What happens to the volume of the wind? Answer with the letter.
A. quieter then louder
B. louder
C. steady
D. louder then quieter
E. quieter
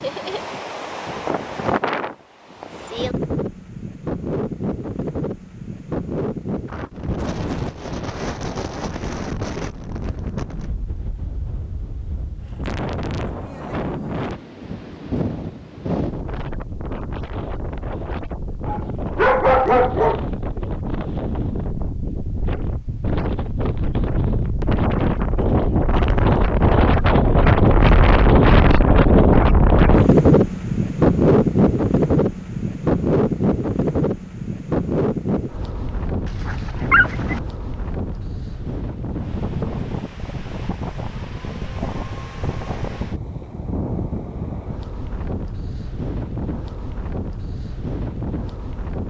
D.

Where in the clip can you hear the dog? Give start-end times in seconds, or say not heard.
18.6-20.4, 36.2-37.4.